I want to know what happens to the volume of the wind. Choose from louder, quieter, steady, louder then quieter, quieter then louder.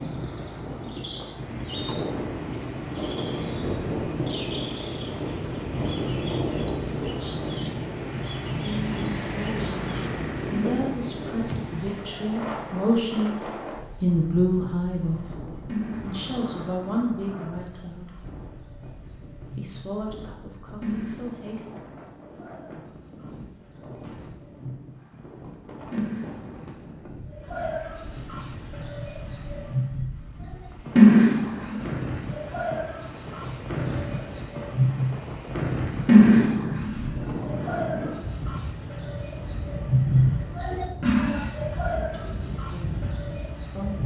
quieter then louder.